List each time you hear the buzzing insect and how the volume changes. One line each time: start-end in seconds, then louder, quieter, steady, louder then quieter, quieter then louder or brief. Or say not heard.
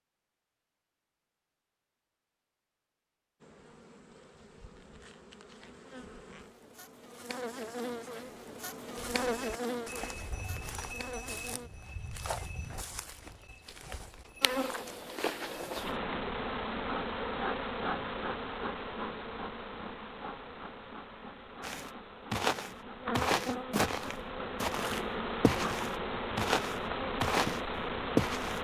3.4-11.7 louder then quieter
14.4-28.5 quieter then louder.